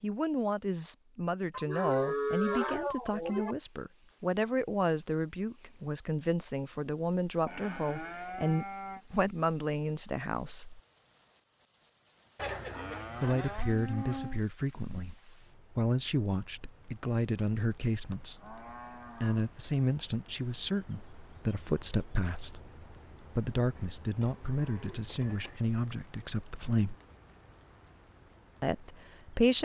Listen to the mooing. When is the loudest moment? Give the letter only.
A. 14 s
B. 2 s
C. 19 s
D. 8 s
B.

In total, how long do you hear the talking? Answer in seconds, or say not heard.
25 s.